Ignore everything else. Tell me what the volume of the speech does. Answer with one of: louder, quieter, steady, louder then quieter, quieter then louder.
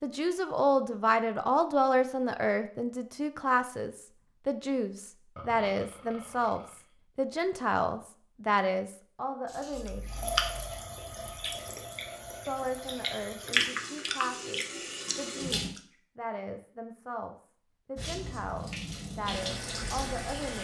quieter.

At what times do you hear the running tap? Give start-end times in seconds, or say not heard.
9.4-15.7, 17.9-20.5.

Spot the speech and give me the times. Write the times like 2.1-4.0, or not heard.
0.0-10.3, 12.4-20.5.